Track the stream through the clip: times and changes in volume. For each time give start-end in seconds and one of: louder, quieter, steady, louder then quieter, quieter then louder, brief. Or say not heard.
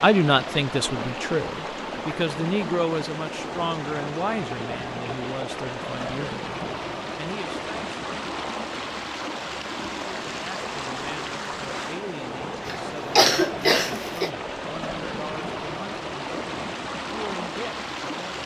0.0-18.4 steady.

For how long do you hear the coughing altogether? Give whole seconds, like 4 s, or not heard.
2 s.